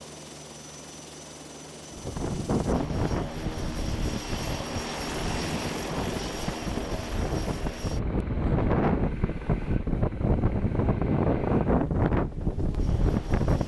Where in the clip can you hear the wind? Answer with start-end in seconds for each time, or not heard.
1.9-13.6.